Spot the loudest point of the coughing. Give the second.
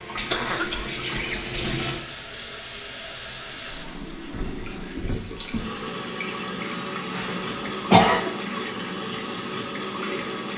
8 s.